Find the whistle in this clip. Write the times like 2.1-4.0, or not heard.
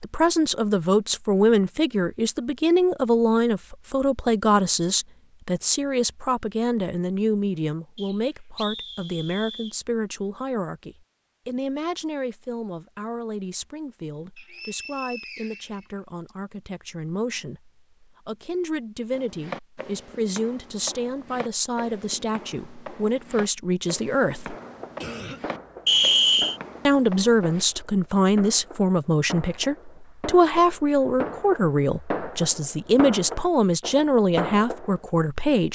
8.0-9.8, 14.3-16.3, 25.9-26.6.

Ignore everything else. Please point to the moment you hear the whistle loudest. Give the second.
26 s.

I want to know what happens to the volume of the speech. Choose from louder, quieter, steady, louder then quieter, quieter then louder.
quieter then louder.